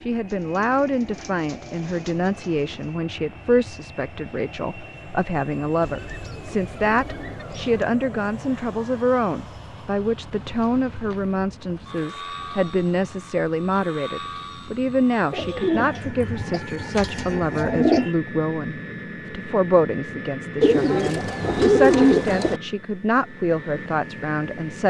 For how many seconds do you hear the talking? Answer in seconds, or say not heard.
25 s.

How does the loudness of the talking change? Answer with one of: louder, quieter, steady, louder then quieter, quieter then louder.
steady.